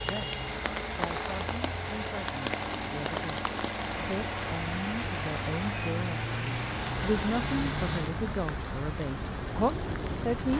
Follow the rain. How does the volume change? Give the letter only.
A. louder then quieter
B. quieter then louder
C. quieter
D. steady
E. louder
D.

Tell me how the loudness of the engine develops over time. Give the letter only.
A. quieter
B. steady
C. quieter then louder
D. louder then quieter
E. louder
B.